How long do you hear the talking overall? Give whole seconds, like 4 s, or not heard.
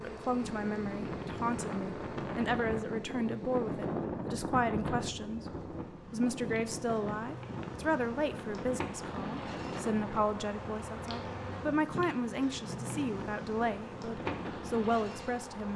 15 s.